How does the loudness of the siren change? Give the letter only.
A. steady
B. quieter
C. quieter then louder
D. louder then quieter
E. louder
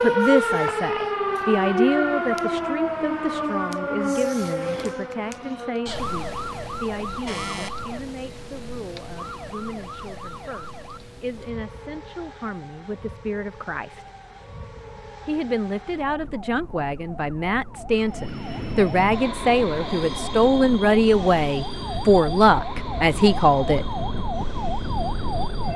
C.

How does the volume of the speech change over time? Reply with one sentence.
The loudness of the speech goes down, then up.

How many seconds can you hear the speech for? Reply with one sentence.
You can hear the speech for 23 seconds altogether.